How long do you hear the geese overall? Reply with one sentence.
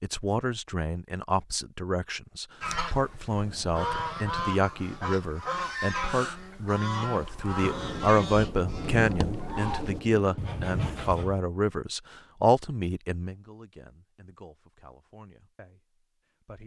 You can hear the geese for 9 seconds altogether.